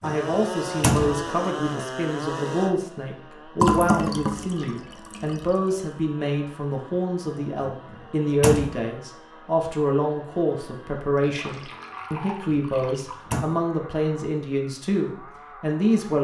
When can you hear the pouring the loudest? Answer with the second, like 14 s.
4 s.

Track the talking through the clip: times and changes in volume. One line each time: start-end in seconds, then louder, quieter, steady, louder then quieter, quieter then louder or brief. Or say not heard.
0.0-16.1 steady.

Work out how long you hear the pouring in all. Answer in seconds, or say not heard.
4 s.